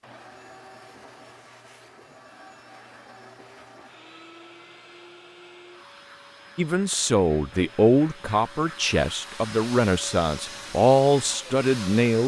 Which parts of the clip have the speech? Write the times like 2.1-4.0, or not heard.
6.5-12.2.